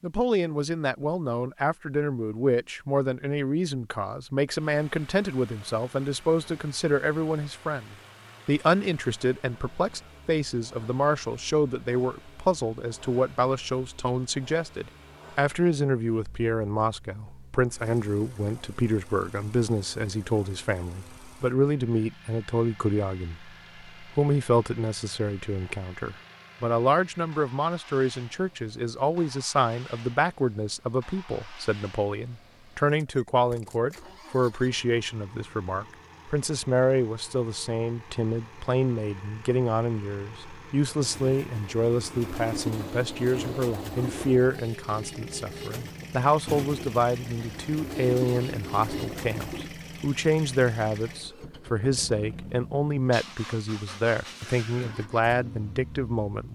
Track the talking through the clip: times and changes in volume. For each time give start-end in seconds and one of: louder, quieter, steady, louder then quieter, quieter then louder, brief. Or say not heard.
0.0-56.4 steady.